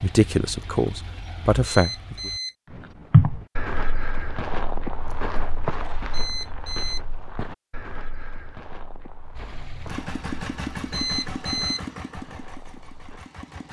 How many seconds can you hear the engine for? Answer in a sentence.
You can hear the engine for 7 seconds altogether.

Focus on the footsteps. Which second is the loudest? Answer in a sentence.
The loudest moment of the footsteps is at 3 seconds.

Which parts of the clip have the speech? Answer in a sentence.
The speech can be heard from 0.0 to 2.3 s.